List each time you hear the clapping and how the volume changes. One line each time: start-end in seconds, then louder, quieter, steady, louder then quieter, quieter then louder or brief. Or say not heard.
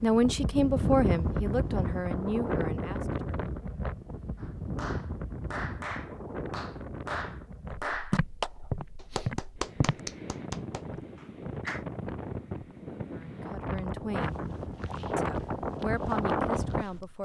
4.3-11.8 louder then quieter.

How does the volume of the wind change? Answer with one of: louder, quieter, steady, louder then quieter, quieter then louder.
quieter then louder.